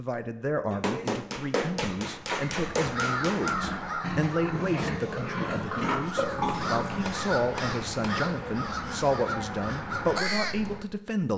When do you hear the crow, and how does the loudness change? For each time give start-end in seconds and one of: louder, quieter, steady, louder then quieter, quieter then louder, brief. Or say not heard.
2.8-10.8 quieter then louder.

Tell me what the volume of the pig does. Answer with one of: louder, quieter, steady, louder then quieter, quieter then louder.
louder.